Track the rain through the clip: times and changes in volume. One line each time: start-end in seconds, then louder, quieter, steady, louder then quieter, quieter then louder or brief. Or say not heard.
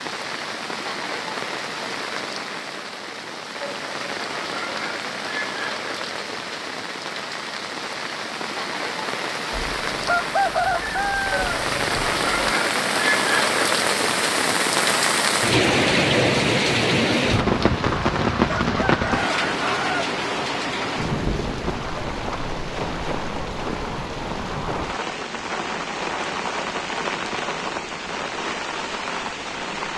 0.0-29.9 louder then quieter.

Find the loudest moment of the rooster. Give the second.
11 s.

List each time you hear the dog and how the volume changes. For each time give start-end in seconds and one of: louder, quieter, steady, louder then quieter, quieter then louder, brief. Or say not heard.
not heard.